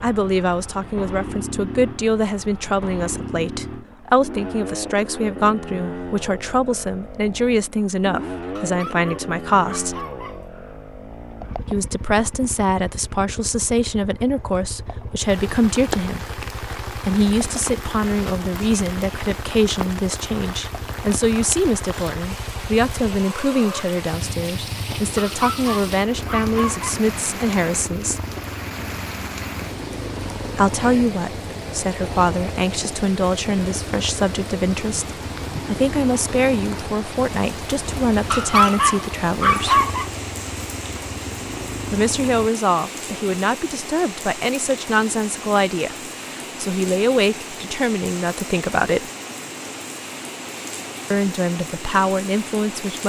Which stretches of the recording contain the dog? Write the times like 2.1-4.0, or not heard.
8.6-10.4, 25.1-26.9, 38.3-40.0.